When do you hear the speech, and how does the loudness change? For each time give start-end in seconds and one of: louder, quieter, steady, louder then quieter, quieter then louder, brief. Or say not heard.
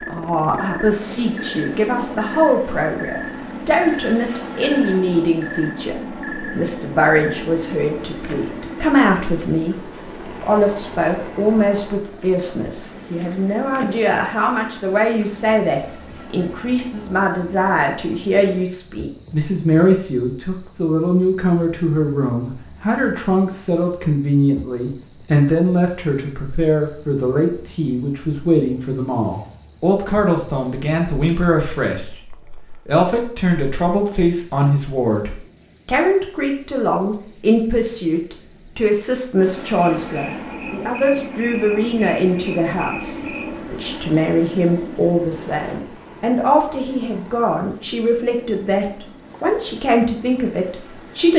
0.1-51.3 steady.